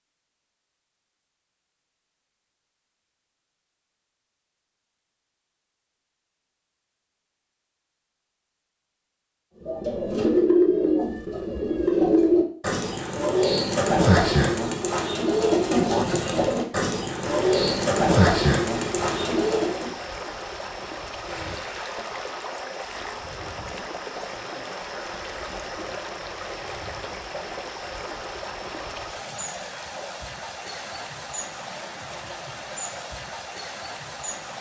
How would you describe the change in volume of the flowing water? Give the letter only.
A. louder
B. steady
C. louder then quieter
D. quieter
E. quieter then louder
B.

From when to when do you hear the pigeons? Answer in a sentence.
You can hear the pigeons from 9.6 to 19.9 s.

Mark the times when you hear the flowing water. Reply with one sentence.
The flowing water can be heard from 17.2 to 34.5 s.